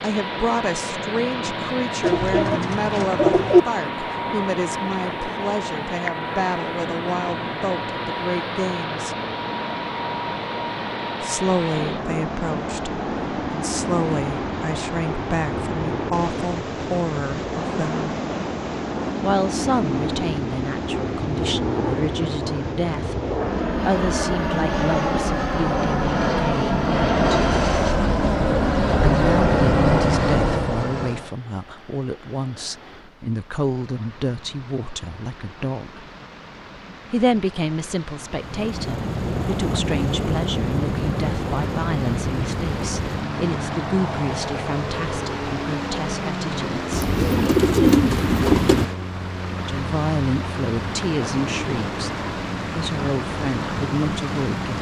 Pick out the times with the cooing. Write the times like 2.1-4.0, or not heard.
2.0-3.6, 46.9-48.9.